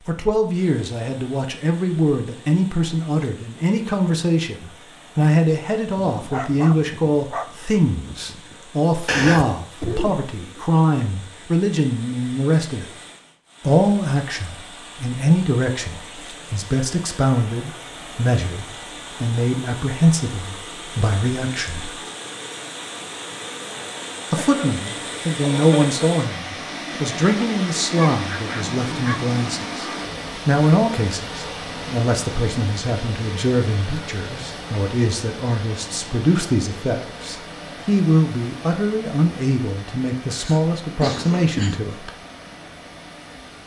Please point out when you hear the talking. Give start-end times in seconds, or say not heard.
0.1-12.9, 13.6-21.9, 24.3-29.9, 30.4-42.1.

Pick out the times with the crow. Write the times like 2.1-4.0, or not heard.
not heard.